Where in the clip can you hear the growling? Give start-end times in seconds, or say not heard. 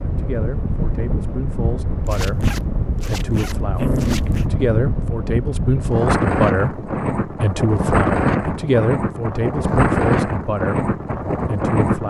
3.8-4.3.